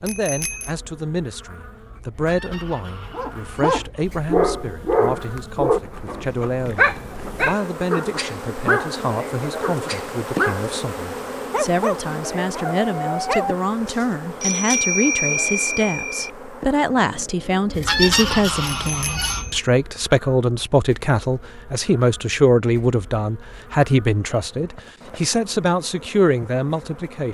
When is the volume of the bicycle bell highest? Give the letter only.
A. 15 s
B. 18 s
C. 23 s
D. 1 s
A.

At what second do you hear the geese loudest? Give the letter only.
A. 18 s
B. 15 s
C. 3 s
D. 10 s
A.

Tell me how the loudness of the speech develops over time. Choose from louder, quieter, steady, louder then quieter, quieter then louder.
louder.